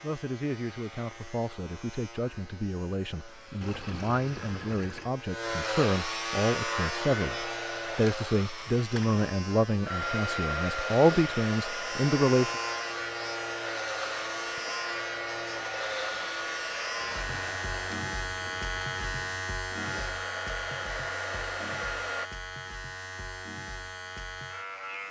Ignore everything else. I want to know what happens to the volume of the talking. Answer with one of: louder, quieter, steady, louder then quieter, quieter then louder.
louder.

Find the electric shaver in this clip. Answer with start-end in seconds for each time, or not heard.
0.0-25.0.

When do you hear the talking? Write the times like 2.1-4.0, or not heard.
0.0-12.5.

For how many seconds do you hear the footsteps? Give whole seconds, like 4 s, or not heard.
not heard.